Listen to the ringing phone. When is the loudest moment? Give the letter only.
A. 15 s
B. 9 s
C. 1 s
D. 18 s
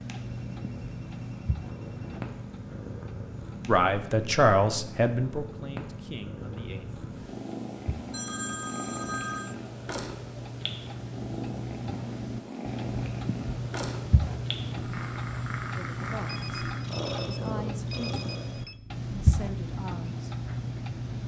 B.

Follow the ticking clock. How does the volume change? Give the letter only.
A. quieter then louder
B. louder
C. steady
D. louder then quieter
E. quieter
B.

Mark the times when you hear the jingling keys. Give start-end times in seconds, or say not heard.
not heard.